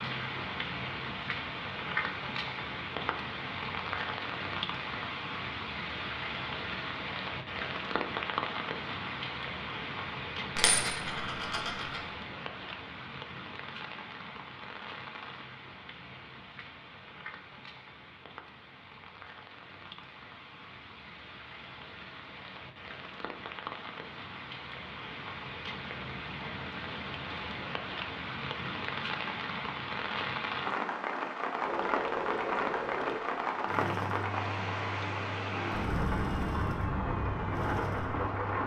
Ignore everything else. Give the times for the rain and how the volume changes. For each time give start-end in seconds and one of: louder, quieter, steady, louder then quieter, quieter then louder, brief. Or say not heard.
0.0-38.6 quieter then louder.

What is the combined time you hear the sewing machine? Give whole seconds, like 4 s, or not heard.
7 s.